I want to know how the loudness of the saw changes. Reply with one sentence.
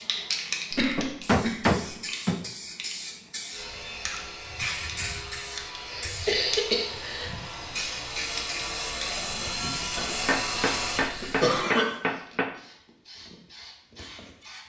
The loudness of the saw goes up.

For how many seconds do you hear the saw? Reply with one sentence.
You can hear the saw for 8 seconds altogether.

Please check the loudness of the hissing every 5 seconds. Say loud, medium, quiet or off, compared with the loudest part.
loud, loud, quiet.